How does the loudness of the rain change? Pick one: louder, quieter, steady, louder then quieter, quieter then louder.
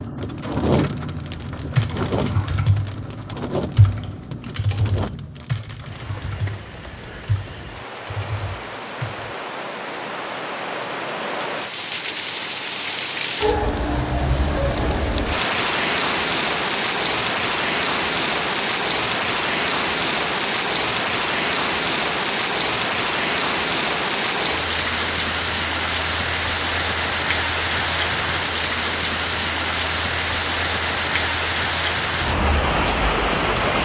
louder.